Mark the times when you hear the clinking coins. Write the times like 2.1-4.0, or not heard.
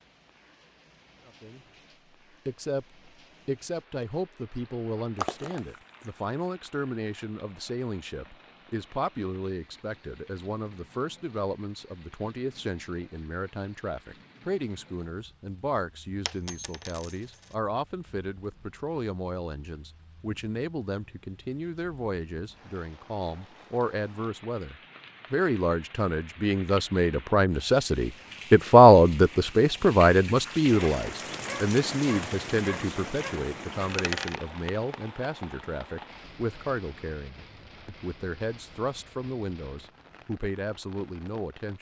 5.2-6.1, 16.2-17.5, 33.8-34.4.